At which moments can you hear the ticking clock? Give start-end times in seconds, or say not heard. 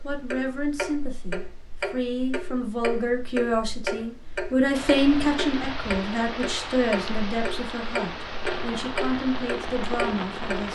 0.0-10.7.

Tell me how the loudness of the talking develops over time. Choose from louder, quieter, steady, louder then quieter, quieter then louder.
louder then quieter.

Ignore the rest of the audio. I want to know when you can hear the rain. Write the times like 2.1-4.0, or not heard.
4.7-10.7.